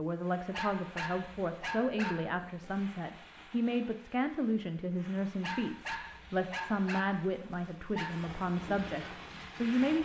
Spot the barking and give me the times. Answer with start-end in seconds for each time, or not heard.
0.5-2.9, 5.4-8.2.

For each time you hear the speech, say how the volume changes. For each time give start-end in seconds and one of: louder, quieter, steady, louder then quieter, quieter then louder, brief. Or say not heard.
0.0-9.9 steady.